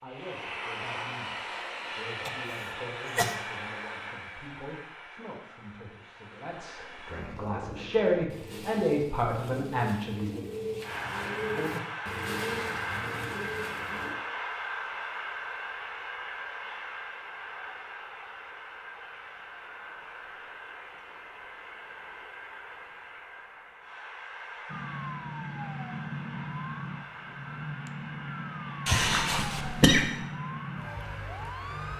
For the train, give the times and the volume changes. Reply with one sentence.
The train can be heard from 0.0 to 7.2 s, getting quieter; and from 10.8 to 31.9 s, getting quieter.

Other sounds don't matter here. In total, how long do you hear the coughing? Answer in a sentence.
The coughing can be heard for 2 seconds in total.